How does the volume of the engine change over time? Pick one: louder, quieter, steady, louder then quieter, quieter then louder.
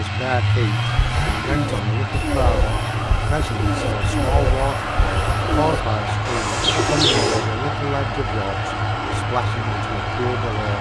steady.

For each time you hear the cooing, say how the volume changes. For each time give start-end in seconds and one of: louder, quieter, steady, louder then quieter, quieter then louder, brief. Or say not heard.
0.8-7.5 louder.